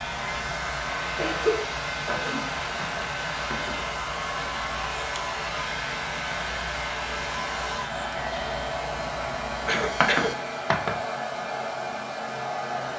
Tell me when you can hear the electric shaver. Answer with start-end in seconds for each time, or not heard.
0.0-10.3.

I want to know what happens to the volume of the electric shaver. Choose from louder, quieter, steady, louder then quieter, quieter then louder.
steady.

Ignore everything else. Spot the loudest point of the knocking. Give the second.
10 s.